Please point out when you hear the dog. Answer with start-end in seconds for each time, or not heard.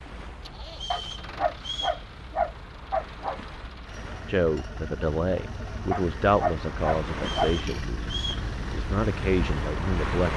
0.9-3.4, 5.9-7.5.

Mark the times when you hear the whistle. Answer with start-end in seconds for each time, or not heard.
0.7-2.0, 7.2-8.4.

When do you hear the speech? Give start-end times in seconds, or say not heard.
4.2-10.3.